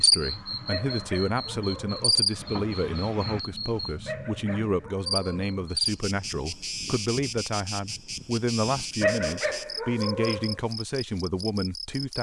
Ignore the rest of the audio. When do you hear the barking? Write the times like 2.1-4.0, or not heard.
0.7-2.3, 4.0-5.6, 9.0-10.6.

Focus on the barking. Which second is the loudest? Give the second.
9 s.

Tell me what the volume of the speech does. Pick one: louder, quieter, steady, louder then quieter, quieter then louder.
steady.